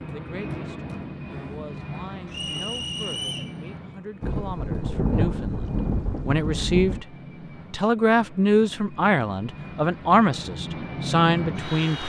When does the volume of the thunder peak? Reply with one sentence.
The volume of the thunder peaks at 5 seconds.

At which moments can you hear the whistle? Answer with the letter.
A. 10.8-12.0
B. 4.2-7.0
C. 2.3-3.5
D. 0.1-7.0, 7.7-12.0
C.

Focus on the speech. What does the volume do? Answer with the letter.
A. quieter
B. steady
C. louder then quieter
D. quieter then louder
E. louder
E.